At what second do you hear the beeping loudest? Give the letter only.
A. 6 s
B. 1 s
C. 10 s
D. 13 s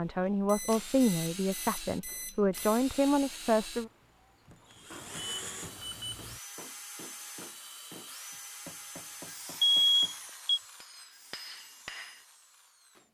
C.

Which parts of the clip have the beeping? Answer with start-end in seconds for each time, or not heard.
0.5-2.9, 4.9-6.4, 9.6-10.6.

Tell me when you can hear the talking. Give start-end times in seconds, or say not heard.
0.0-3.9.